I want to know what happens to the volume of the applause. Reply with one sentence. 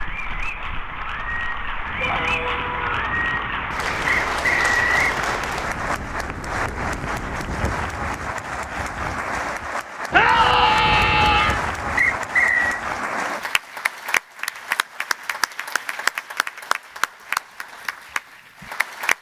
The volume of the applause stays about the same.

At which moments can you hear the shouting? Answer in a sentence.
You can hear the shouting from 2.0 to 3.0 s and from 10.1 to 11.7 s.